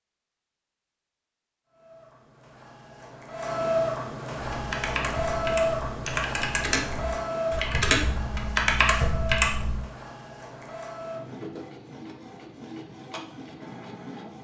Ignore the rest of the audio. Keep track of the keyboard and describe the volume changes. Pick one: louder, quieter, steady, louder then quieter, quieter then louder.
louder.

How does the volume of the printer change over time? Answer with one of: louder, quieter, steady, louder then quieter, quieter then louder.
quieter.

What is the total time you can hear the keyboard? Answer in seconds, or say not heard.
5 s.